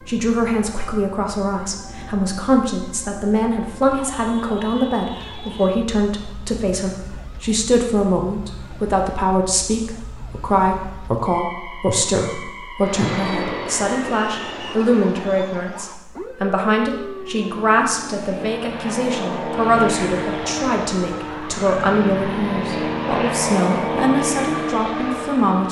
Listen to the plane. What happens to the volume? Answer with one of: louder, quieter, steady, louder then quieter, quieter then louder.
quieter then louder.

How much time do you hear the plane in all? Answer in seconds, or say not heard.
13 s.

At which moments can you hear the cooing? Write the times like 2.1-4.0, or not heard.
not heard.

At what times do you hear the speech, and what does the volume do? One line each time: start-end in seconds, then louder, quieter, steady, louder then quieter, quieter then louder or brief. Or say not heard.
0.1-25.6 steady.